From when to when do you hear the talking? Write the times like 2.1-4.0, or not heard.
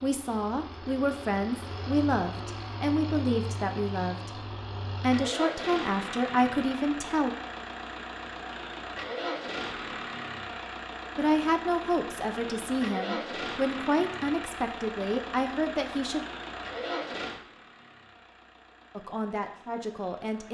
0.0-7.3, 11.2-16.2, 18.9-20.4.